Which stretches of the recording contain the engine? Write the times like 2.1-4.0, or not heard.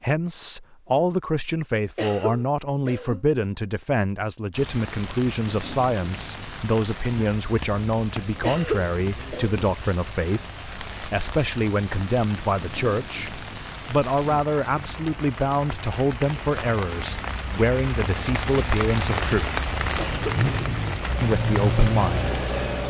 20.1-22.8.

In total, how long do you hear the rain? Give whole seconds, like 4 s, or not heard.
18 s.